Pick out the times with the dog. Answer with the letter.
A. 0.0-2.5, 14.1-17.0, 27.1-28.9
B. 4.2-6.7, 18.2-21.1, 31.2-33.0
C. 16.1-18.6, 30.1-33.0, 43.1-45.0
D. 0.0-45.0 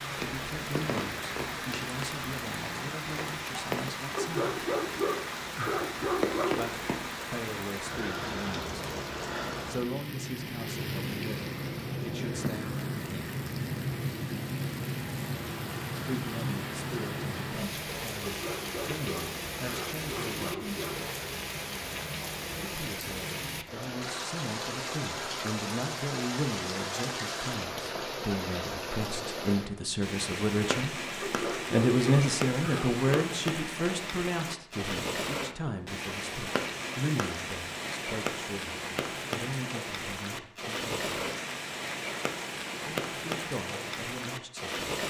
B.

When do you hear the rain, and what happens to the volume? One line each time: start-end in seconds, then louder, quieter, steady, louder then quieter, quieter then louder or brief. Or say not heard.
0.0-45.0 steady.